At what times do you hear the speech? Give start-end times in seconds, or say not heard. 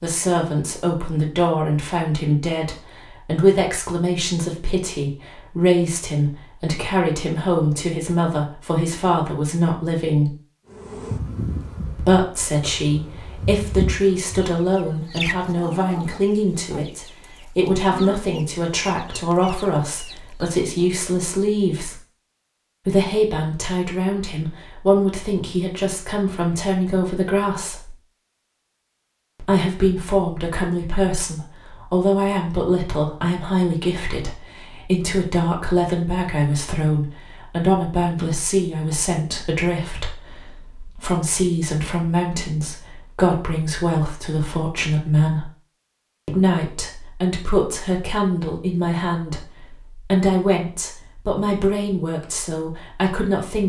0.0-10.3, 11.9-22.0, 22.9-27.9, 29.4-45.5, 46.2-53.6.